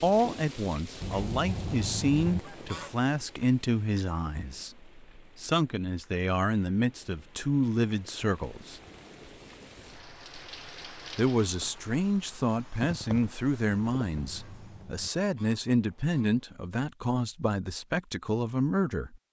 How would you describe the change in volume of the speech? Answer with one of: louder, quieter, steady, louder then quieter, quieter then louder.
steady.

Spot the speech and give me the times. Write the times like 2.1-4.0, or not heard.
0.0-8.8, 11.2-19.2.